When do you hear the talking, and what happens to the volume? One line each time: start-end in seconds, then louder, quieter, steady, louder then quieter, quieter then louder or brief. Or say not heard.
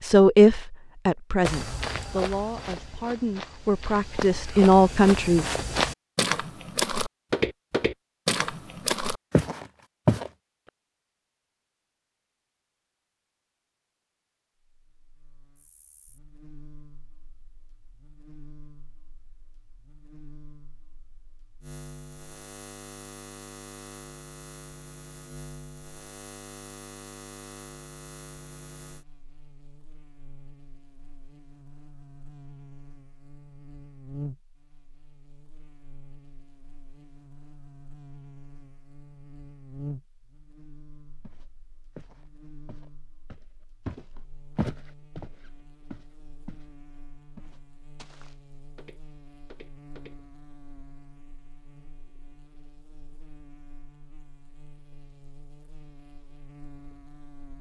0.0-5.5 quieter then louder.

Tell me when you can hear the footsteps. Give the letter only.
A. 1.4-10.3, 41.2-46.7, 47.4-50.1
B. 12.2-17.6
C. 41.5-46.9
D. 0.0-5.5
A.